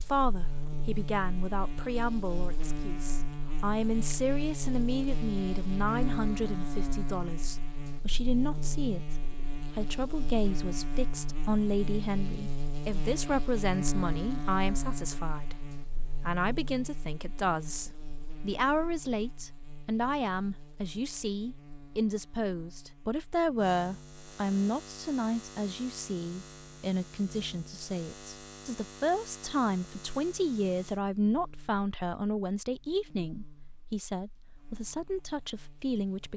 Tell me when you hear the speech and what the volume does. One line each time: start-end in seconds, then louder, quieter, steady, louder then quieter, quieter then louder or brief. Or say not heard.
0.1-36.3 steady.